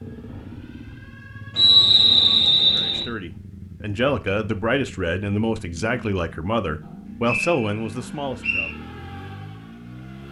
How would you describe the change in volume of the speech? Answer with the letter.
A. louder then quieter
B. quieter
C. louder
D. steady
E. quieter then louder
D.